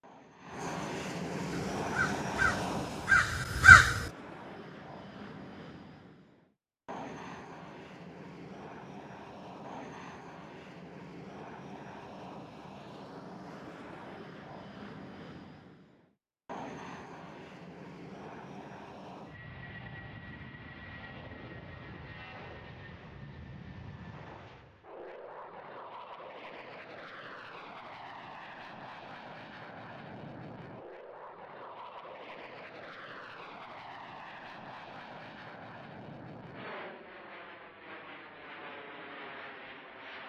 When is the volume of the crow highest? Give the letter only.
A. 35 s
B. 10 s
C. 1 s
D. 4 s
D.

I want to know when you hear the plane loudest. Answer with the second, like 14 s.
2 s.